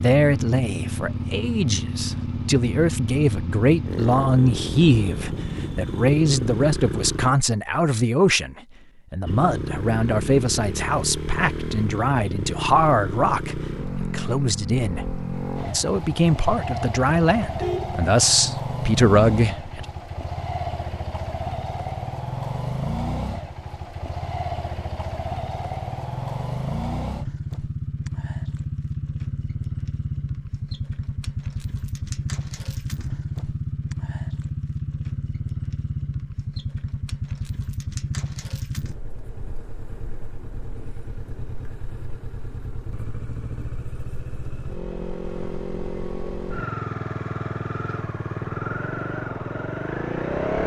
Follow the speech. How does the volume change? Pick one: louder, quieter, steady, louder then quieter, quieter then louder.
steady.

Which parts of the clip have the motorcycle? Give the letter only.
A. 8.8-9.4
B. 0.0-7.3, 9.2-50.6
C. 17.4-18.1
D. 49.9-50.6
B.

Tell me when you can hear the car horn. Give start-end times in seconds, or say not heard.
17.4-18.1.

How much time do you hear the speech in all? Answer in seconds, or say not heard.
20 s.